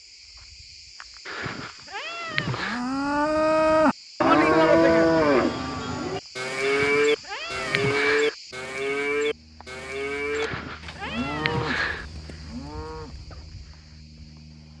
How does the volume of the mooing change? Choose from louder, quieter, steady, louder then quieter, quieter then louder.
quieter.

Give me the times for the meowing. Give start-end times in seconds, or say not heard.
1.2-2.8, 6.6-8.3, 10.3-12.1.